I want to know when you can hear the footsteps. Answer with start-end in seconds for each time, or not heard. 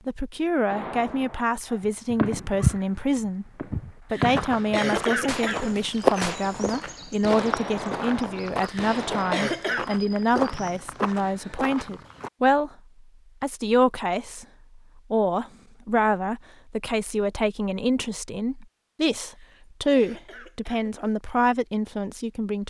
1.8-12.3.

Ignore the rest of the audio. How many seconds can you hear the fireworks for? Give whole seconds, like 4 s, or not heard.
9 s.